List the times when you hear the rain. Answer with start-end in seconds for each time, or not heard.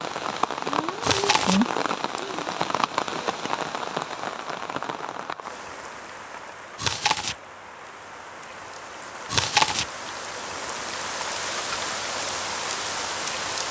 0.0-13.6.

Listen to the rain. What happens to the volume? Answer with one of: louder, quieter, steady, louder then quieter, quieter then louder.
quieter then louder.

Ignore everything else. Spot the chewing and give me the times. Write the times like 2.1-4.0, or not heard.
1.0-1.6, 6.8-7.3, 9.3-9.8.